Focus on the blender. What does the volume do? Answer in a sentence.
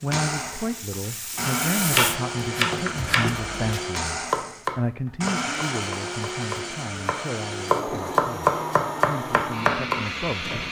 The volume of the blender stays about the same.